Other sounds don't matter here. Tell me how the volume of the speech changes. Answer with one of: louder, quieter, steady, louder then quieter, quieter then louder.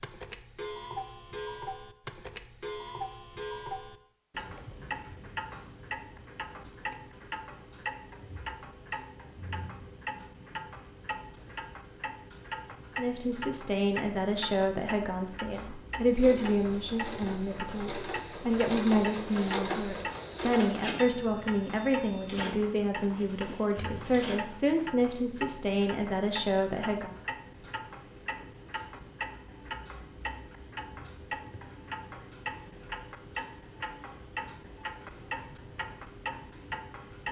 steady.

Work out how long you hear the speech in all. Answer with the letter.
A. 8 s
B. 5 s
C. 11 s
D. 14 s
D.